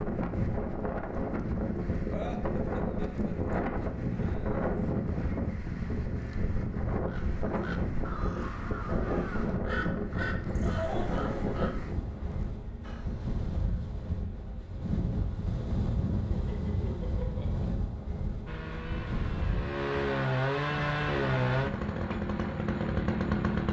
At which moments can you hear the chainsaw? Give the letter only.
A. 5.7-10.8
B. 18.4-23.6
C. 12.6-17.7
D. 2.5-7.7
B.